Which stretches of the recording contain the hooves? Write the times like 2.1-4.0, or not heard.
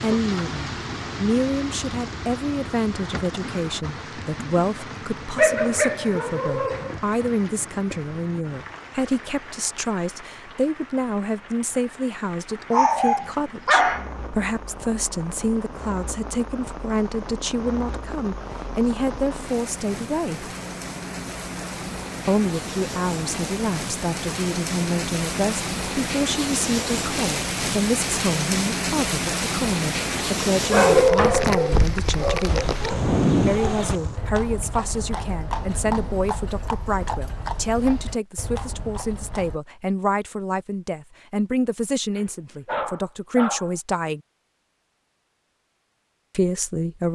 32.4-39.6.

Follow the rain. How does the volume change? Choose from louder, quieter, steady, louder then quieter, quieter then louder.
quieter then louder.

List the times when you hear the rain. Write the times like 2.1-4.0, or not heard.
0.0-34.2.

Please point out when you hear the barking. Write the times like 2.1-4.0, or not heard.
5.3-6.9, 12.7-14.1, 30.7-32.6, 42.1-43.8.